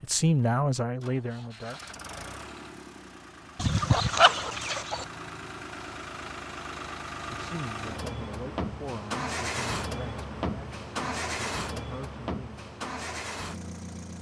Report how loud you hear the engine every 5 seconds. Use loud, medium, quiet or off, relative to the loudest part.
medium, loud, loud.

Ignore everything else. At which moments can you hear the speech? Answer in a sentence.
The speech can be heard from 0.0 to 1.8 s and from 7.3 to 12.6 s.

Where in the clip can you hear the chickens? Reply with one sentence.
You can hear the chickens from 3.5 to 5.0 s.